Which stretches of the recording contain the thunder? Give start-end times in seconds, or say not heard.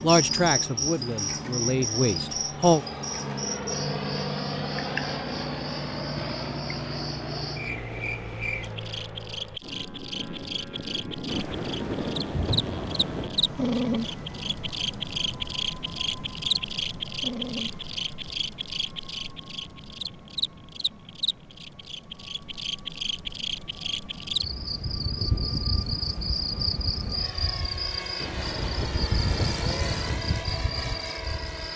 11.2-13.3, 28.2-30.2.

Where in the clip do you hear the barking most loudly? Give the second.
14 s.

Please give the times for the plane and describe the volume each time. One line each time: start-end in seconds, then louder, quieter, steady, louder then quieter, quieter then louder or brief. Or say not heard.
0.0-31.7 quieter then louder.